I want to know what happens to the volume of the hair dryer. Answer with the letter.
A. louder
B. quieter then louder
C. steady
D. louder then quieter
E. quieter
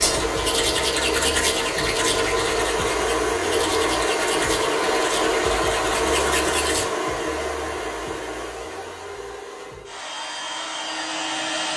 E.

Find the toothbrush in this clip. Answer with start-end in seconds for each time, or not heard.
0.0-6.8.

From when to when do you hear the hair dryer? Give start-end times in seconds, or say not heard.
0.0-11.7.